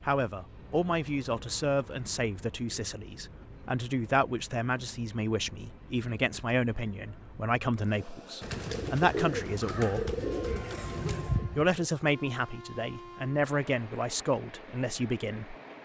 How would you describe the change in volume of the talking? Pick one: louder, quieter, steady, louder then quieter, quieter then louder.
steady.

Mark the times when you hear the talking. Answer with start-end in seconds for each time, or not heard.
0.1-10.2, 11.6-15.6.